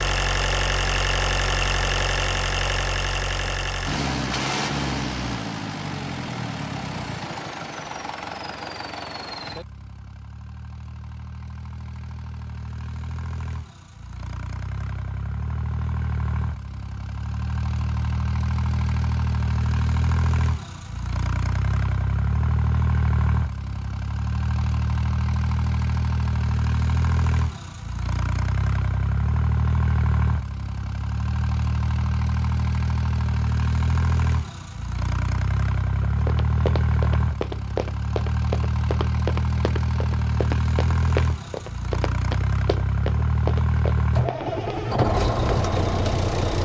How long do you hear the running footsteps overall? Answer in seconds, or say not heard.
10 s.